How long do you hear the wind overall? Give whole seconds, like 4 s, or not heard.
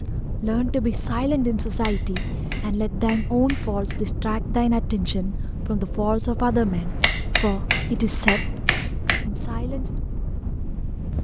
11 s.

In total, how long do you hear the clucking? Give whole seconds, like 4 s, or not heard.
not heard.